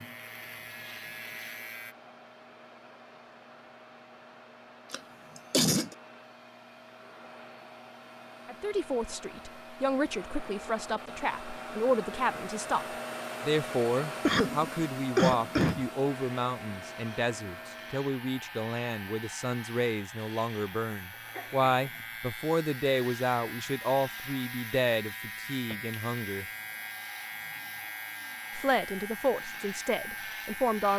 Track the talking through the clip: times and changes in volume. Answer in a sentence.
The talking can be heard from 8.4 to 26.4 s, at a steady volume; and briefly from 28.6 to 30.9 s.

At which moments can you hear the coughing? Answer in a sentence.
You can hear the coughing from 4.9 to 6.0 s, from 14.2 to 15.8 s and from 21.1 to 22.0 s.